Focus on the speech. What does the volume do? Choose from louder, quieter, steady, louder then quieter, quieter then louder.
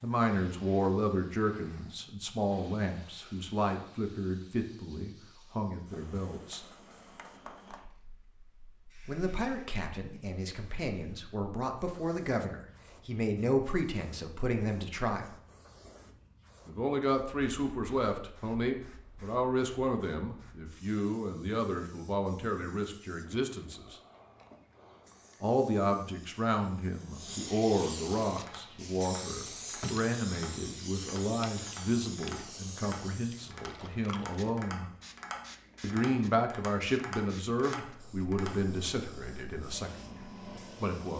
steady.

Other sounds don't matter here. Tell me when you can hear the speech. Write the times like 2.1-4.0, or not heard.
0.0-6.6, 9.1-15.3, 16.6-23.9, 25.4-34.9, 35.8-41.1.